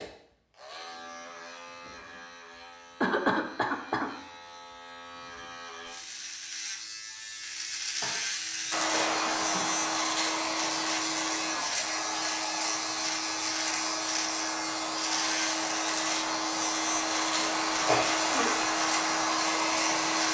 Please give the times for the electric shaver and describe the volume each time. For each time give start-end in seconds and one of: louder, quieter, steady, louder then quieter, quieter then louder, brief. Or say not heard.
0.0-20.2 louder.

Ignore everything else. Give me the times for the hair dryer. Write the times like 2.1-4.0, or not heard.
8.7-20.2.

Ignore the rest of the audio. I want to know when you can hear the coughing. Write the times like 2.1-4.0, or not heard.
3.0-4.1, 8.0-9.7, 17.9-18.6.